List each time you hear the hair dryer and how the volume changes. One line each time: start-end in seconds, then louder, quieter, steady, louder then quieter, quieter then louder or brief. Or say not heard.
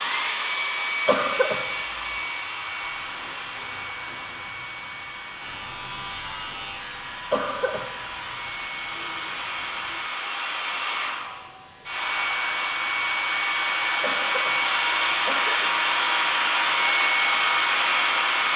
0.0-18.5 quieter then louder.